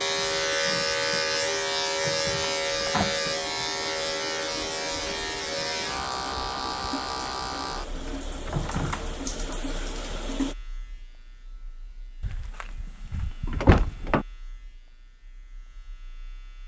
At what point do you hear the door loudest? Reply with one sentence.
The volume of the door peaks at 14 seconds.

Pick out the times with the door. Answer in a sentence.
The door can be heard from 1.9 to 3.2 s, from 8.4 to 9.2 s and from 12.2 to 14.2 s.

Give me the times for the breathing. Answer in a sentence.
You can't hear the breathing here.